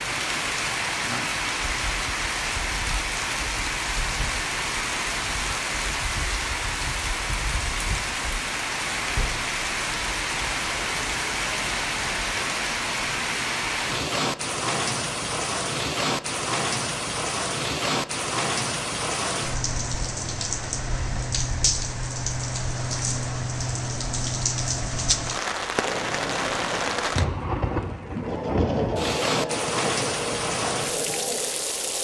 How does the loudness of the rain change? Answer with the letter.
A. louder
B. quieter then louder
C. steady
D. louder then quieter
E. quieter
C.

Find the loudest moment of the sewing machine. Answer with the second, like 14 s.
29 s.